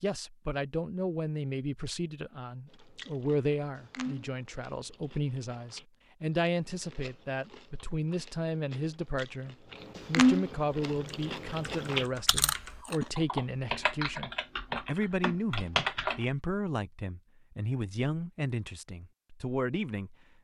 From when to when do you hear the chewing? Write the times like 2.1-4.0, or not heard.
2.7-13.1.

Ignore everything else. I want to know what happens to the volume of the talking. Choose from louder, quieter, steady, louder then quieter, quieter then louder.
steady.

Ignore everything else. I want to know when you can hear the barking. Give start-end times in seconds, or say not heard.
not heard.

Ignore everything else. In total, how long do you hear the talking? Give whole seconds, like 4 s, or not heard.
20 s.